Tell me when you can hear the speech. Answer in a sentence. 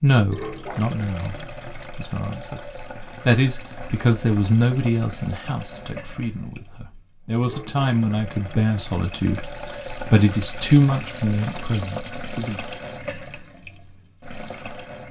The speech can be heard from 0.0 to 12.6 s.